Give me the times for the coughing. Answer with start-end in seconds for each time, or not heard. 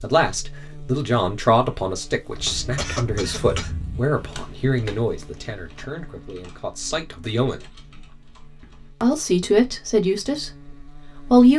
2.5-3.7.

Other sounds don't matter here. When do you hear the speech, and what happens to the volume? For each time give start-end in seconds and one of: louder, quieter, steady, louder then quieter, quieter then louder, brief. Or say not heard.
0.0-7.6 quieter
9.0-11.5 brief.